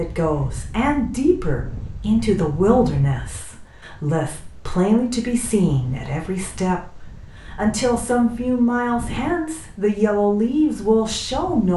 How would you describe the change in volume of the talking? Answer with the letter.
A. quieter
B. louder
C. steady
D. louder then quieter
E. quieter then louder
C.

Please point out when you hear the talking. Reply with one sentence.
You can hear the talking from 0.0 to 11.7 s.